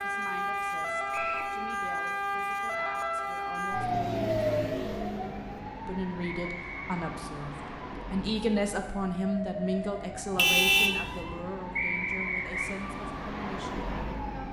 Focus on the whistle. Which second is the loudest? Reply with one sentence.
The loudest moment of the whistle is at 12 seconds.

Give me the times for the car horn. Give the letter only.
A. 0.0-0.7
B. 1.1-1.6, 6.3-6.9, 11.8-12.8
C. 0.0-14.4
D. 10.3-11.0
D.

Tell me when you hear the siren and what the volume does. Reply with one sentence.
The siren can be heard from 0.0 to 14.4 s, getting quieter.